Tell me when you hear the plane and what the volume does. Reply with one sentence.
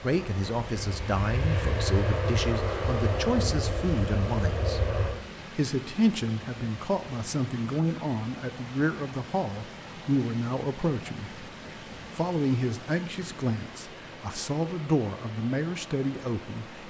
The plane can be heard from 0.0 to 5.2 s, getting louder.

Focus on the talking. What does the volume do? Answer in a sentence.
The loudness of the talking stays about the same.